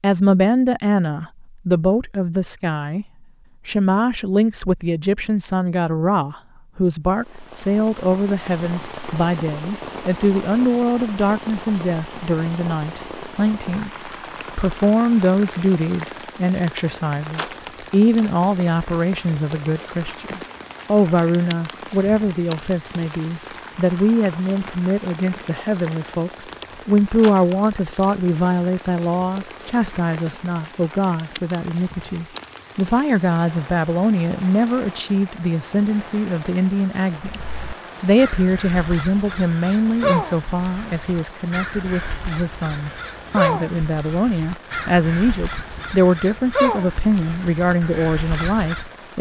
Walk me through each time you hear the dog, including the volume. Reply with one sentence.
The dog can't be heard in this clip.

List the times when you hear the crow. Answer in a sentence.
You can hear the crow from 37.2 to 48.9 s.